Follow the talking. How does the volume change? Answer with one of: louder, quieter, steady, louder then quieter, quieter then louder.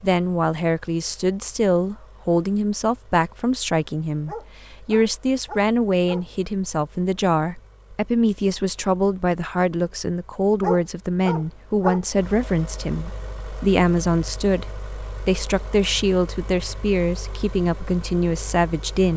steady.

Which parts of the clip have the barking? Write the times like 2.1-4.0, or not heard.
4.2-6.2, 10.6-12.0.